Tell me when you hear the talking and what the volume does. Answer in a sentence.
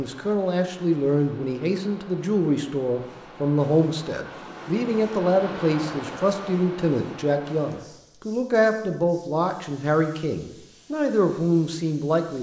You can hear the talking from 0.0 to 12.3 s, at a steady volume.